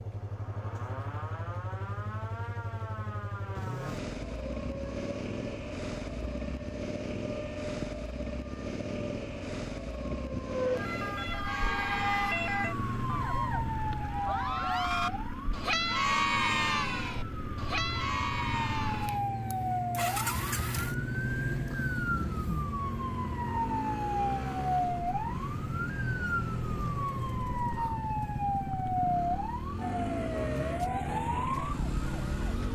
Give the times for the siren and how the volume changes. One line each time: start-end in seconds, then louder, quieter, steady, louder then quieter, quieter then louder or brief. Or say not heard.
0.0-32.7 louder.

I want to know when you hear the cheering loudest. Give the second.
16 s.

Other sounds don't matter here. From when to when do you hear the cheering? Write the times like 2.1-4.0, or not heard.
11.4-19.2.